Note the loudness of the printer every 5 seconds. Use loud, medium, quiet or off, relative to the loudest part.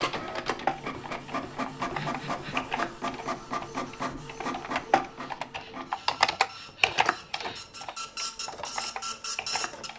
loud, medium.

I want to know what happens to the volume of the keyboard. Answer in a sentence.
The volume of the keyboard goes up, then down.